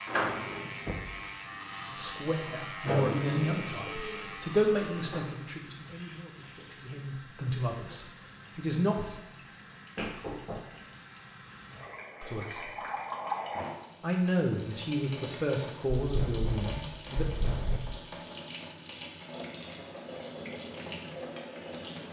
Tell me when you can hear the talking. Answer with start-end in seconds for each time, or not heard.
1.9-8.9, 12.2-12.7, 14.0-17.2.